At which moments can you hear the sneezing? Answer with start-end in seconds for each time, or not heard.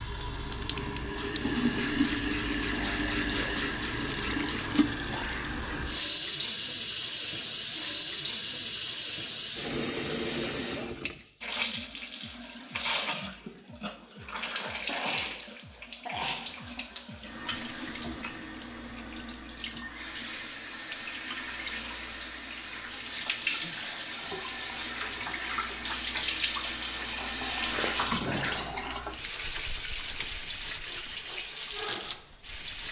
2.0-3.6, 14.5-16.4, 28.1-28.6.